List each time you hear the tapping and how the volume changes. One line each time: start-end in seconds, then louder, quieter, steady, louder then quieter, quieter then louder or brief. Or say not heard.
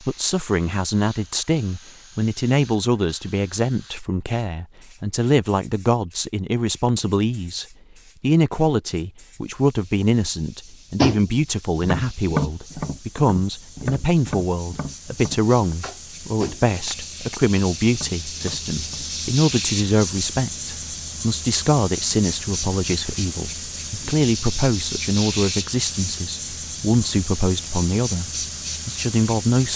10.9-19.1 quieter.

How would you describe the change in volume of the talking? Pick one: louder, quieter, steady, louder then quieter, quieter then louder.
steady.